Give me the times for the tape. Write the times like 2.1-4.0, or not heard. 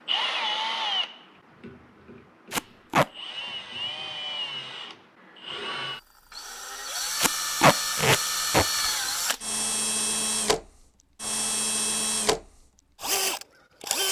2.5-3.1, 7.2-8.7.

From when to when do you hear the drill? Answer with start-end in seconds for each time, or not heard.
0.0-14.0.